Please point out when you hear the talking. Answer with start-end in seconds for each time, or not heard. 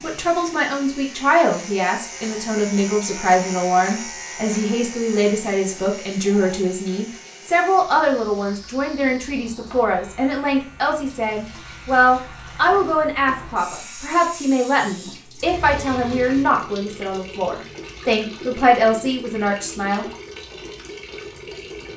0.0-20.1.